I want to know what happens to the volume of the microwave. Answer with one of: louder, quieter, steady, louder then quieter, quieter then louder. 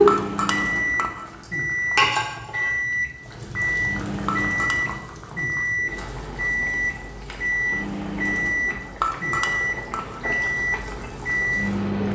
steady.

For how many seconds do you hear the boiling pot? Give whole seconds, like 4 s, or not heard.
12 s.